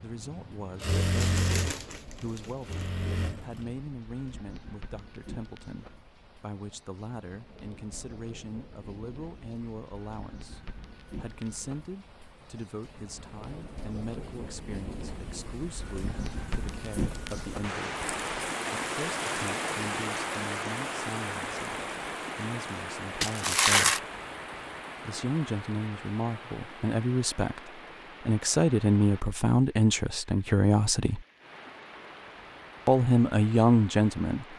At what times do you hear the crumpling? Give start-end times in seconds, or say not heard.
1.1-2.9, 17.9-18.5, 23.2-24.0.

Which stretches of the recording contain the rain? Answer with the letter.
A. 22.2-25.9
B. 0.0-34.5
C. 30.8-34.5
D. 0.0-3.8
B.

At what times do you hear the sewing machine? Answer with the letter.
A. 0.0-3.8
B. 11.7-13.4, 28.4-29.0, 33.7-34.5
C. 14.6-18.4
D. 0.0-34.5
A.